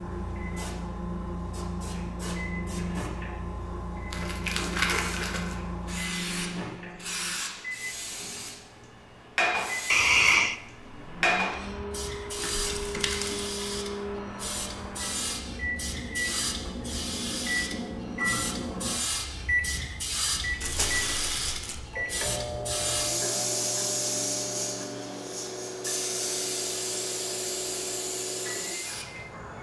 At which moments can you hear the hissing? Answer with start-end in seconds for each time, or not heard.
0.0-29.5.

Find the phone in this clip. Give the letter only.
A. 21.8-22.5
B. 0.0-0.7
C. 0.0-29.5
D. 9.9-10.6
D.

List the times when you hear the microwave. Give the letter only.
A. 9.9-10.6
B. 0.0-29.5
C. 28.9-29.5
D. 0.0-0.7
B.